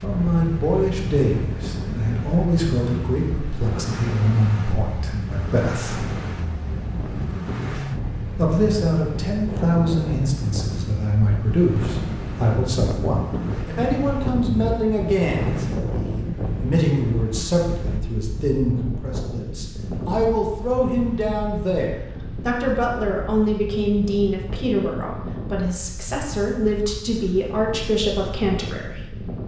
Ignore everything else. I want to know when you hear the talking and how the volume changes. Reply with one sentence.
You can hear the talking from 0.0 to 6.1 s, getting quieter; and from 8.3 to 29.1 s, at a steady volume.